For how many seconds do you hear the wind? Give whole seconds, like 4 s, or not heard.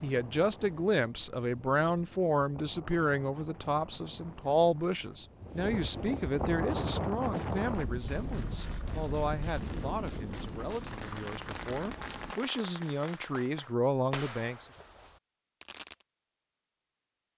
12 s.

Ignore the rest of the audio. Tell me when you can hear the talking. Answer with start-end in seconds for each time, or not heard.
0.0-14.7.